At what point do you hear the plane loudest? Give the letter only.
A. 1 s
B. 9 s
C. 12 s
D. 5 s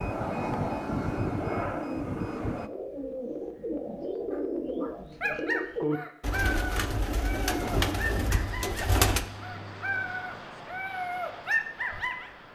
A.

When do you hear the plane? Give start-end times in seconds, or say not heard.
0.0-2.7, 7.6-12.4.